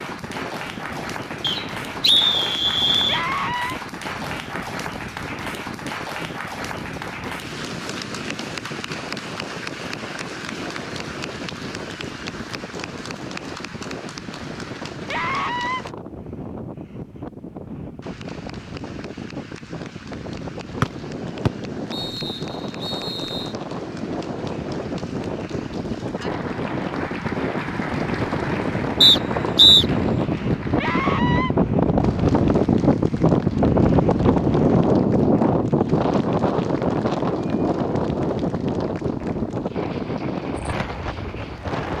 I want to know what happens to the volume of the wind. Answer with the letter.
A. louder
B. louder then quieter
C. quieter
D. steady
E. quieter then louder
A.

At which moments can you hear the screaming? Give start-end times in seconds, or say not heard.
3.0-3.8, 15.1-15.8, 30.8-31.5.